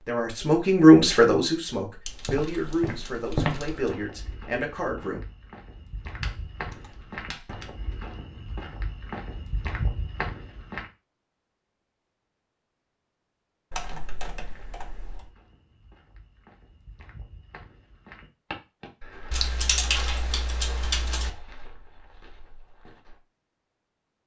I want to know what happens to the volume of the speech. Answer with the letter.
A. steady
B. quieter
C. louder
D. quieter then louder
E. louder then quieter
B.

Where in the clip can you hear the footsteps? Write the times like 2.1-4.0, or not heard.
2.2-10.8, 14.4-23.2.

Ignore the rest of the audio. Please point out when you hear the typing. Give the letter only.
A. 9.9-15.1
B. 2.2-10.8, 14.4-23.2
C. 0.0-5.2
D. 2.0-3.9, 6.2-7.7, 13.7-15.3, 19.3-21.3
D.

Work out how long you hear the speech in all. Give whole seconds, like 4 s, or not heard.
5 s.